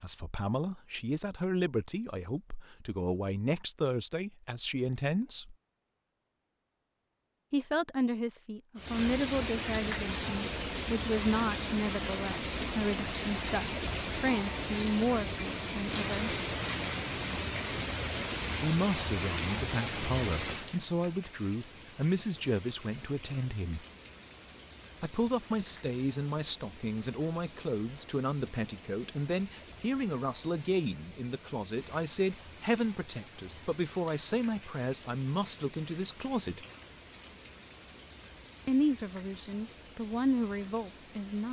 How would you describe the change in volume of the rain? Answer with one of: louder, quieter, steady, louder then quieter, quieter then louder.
quieter.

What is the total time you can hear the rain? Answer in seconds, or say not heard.
33 s.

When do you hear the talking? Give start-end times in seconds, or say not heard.
0.0-5.5, 7.5-16.4, 18.6-23.9, 25.0-36.6, 38.6-41.4.